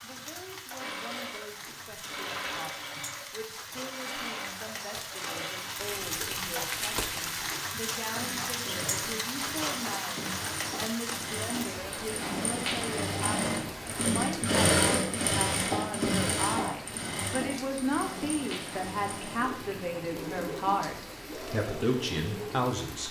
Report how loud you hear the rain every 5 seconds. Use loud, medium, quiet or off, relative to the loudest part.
medium, loud, loud, medium, medium.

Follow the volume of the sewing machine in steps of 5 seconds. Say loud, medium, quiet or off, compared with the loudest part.
medium, medium, loud, loud, medium.